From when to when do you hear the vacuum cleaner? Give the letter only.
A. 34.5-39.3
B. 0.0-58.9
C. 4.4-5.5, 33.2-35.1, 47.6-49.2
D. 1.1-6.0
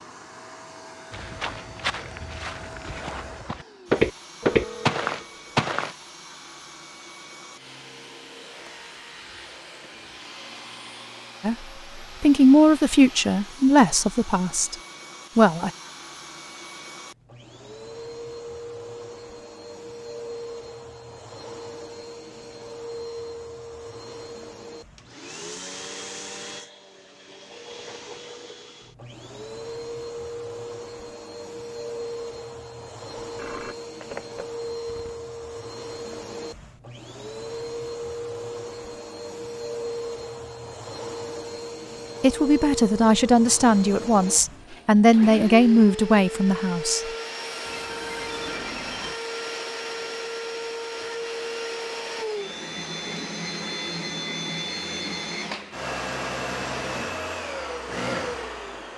B.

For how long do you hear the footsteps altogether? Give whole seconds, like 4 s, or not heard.
5 s.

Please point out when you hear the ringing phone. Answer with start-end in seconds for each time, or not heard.
4.4-5.5, 33.2-35.1, 47.6-49.2.